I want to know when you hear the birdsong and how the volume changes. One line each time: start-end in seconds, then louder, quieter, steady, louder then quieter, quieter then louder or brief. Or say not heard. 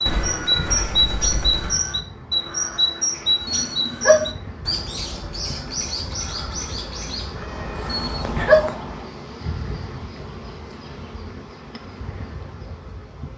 0.0-9.1 quieter.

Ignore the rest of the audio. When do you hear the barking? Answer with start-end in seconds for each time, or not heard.
3.5-4.3, 7.9-8.8.